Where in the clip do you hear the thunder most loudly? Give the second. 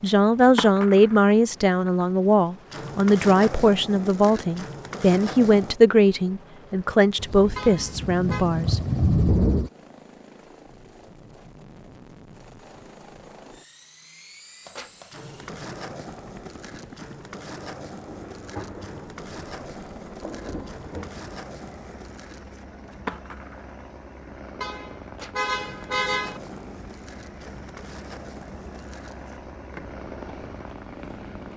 9 s.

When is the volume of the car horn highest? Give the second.
26 s.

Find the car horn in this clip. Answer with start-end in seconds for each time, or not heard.
7.5-8.4, 24.6-26.4.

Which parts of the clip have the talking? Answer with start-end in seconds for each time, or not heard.
0.0-8.8.